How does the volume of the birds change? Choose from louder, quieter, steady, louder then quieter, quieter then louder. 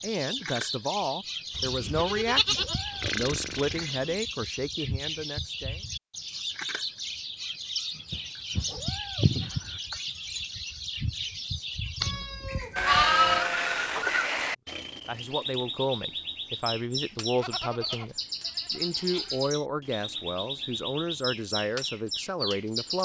steady.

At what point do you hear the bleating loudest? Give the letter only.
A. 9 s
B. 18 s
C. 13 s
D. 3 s
C.